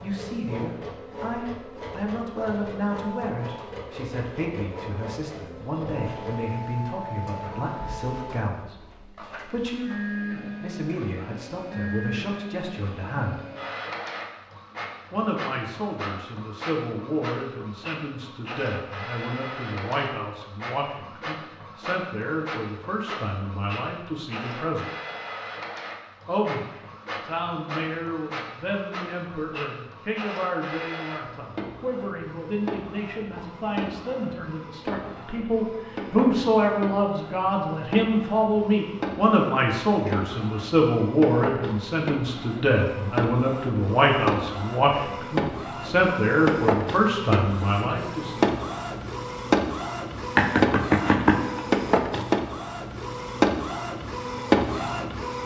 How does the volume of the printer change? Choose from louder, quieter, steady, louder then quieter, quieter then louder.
louder.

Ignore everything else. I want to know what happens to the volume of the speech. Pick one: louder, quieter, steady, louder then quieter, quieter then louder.
louder.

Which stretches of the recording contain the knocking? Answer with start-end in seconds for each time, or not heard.
50.4-51.7.